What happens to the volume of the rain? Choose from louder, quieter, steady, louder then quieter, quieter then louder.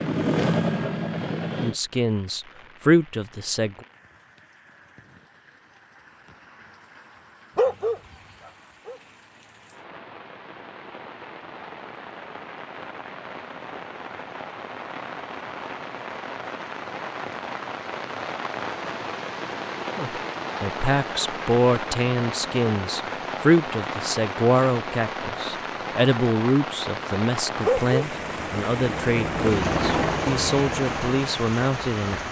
louder.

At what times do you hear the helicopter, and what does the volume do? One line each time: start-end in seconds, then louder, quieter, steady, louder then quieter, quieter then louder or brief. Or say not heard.
0.0-1.8 brief
28.1-32.2 louder then quieter.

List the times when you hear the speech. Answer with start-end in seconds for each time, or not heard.
1.6-3.8, 19.9-32.2.